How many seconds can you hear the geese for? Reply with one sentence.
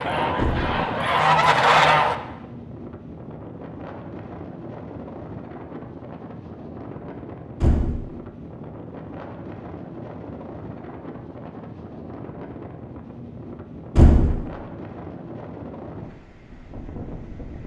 The geese can be heard for 2 seconds in total.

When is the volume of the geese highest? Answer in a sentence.
The loudest moment of the geese is at 2 seconds.